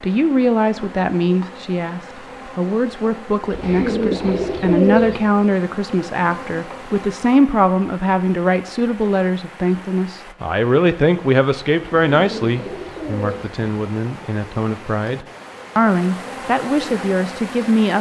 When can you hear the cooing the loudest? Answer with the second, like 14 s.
5 s.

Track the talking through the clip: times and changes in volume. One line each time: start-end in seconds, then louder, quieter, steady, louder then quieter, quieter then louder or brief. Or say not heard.
0.0-17.9 steady.